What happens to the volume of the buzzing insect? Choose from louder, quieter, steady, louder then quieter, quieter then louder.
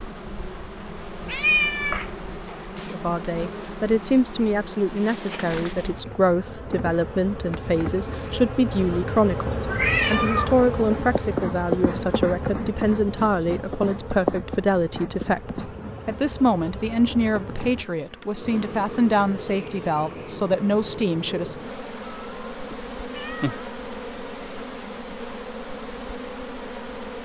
louder then quieter.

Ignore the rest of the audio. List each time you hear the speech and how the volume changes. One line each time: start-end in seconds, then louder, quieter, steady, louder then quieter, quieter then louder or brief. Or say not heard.
2.8-21.6 steady.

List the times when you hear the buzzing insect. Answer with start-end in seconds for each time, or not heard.
0.0-27.2.